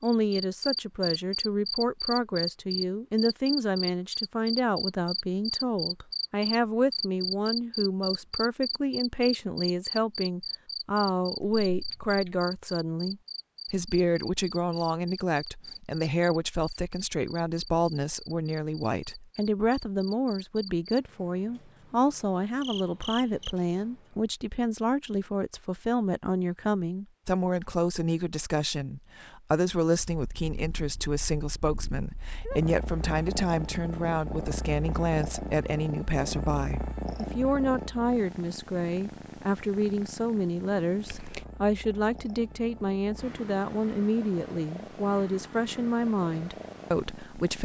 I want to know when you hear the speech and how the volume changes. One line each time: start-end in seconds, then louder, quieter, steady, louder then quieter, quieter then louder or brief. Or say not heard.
0.0-47.6 steady.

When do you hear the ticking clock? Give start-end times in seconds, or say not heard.
not heard.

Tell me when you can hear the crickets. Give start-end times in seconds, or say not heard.
0.0-24.2.